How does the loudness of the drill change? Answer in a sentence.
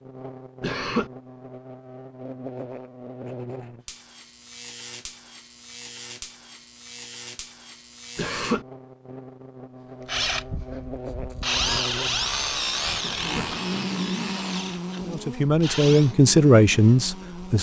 The loudness of the drill goes up, then down.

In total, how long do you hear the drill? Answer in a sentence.
You can hear the drill for 6 seconds altogether.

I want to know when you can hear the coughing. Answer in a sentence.
You can hear the coughing from 0.6 to 1.1 s, from 8.2 to 8.7 s and from 13.0 to 13.5 s.